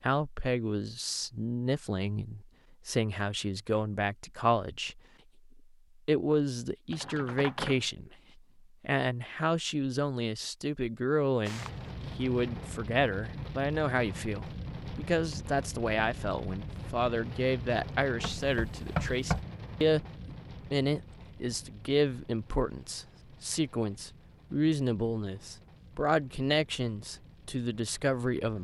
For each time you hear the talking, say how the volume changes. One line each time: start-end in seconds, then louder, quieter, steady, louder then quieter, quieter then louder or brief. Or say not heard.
0.0-8.2 steady
8.8-28.5 steady.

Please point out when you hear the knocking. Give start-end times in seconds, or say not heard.
18.2-19.4.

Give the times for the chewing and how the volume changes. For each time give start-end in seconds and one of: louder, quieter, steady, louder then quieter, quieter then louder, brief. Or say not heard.
not heard.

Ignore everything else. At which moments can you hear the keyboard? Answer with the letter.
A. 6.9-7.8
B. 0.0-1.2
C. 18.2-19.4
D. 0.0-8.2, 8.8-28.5
A.